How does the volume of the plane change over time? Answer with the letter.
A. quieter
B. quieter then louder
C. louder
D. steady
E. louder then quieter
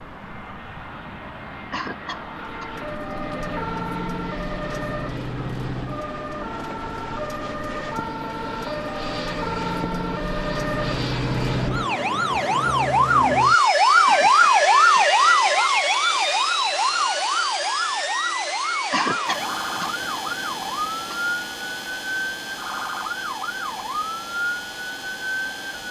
E.